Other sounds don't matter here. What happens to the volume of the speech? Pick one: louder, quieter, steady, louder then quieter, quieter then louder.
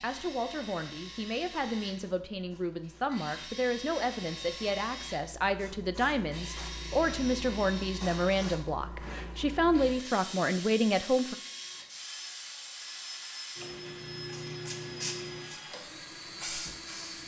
louder.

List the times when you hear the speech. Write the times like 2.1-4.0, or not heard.
0.0-11.3.